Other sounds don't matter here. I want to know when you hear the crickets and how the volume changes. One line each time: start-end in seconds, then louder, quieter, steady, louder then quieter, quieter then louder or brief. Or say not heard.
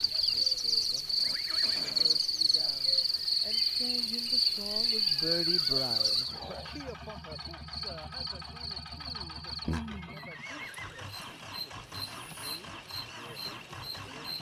0.0-14.3 quieter.